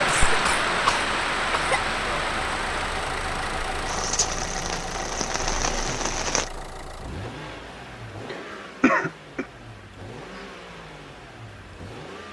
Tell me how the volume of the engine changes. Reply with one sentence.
The volume of the engine goes down.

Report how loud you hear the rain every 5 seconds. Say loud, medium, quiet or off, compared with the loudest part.
loud, loud, off.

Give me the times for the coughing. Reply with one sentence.
The coughing can be heard from 0.1 to 1.8 s and from 8.2 to 9.4 s.